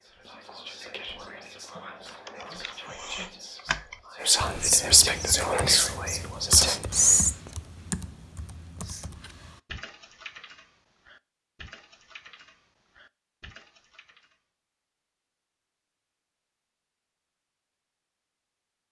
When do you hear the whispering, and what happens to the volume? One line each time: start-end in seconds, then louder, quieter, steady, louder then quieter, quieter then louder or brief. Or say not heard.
0.0-7.3 louder.